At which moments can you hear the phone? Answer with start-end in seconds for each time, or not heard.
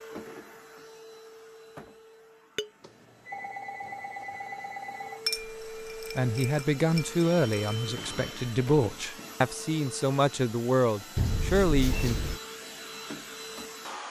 2.8-5.2, 7.2-8.6.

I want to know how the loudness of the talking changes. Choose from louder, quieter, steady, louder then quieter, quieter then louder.
quieter then louder.